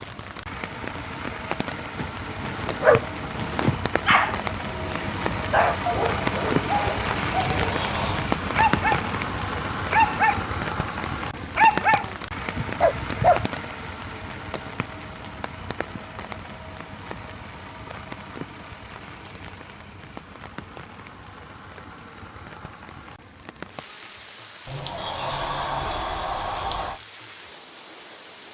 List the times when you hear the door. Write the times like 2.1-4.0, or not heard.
7.5-8.3, 24.6-27.0.